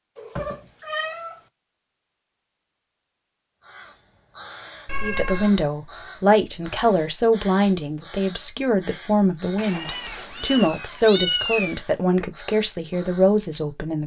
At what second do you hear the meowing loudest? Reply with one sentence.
The loudest moment of the meowing is at 11 seconds.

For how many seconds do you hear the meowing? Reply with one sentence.
You can hear the meowing for 4 seconds altogether.